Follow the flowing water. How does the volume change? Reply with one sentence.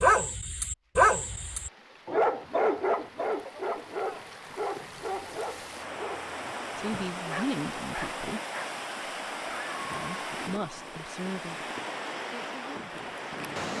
The volume of the flowing water goes up.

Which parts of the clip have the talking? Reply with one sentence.
The talking can be heard from 6.8 to 8.4 s, from 9.8 to 11.7 s and from 12.3 to 13.7 s.